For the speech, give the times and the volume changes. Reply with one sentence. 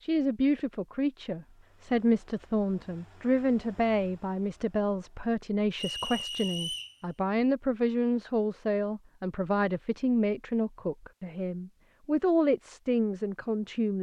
The speech can be heard from 0.0 to 13.9 s, at a steady volume.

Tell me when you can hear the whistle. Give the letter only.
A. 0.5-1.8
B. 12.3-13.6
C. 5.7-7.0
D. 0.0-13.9
C.